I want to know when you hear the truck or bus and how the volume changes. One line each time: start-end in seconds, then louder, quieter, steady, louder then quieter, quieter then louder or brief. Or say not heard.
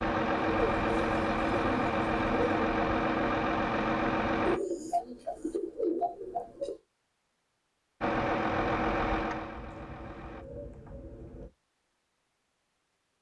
0.0-4.6 steady
8.0-10.4 brief.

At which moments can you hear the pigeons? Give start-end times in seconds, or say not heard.
0.5-2.6, 4.5-6.8, 9.6-11.5.